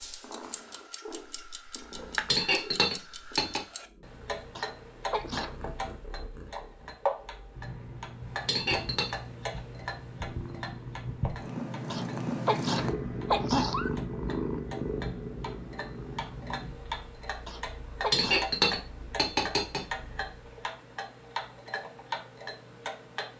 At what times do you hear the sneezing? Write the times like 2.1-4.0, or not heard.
4.5-5.5, 11.9-13.9, 17.4-18.4.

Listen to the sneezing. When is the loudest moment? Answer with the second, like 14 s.
13 s.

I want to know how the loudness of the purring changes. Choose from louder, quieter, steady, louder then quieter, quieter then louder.
louder then quieter.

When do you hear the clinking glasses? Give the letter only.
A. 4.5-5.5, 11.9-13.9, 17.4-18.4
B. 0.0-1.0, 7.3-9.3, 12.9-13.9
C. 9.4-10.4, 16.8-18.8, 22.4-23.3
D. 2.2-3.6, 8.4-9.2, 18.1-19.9
D.